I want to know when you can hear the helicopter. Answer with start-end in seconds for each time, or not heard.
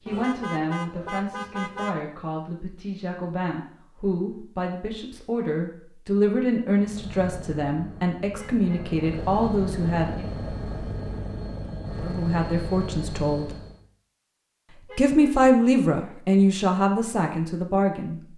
6.8-13.8.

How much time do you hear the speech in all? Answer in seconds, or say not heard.
15 s.